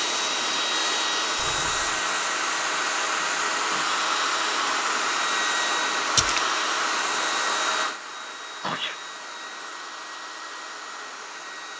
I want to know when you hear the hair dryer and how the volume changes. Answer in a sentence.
The hair dryer can be heard from 0.0 to 11.7 s, getting quieter.